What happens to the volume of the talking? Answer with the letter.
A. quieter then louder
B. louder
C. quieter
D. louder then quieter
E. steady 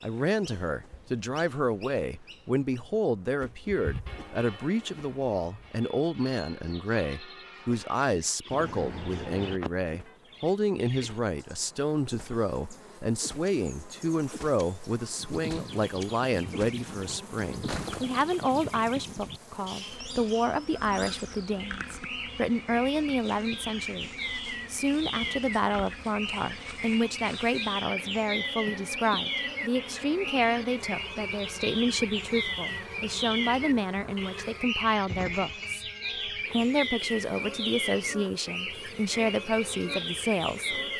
E.